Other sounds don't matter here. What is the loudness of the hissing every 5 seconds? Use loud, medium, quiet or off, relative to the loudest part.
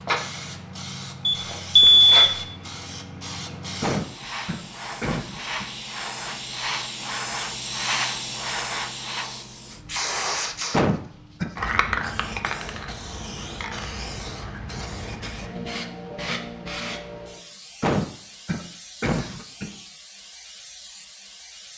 loud, loud, loud, medium, quiet.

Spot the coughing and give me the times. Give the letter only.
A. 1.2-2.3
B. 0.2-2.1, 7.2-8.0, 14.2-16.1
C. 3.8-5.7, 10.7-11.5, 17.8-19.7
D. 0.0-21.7
C.